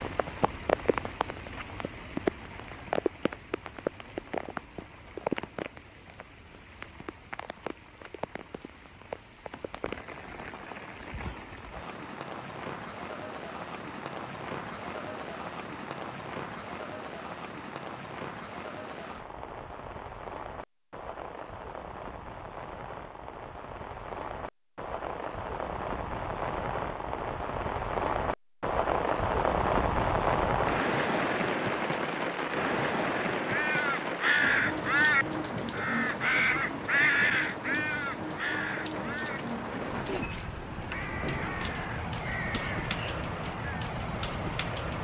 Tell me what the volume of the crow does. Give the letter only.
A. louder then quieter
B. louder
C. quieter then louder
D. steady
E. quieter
E.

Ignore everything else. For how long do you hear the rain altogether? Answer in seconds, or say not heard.
45 s.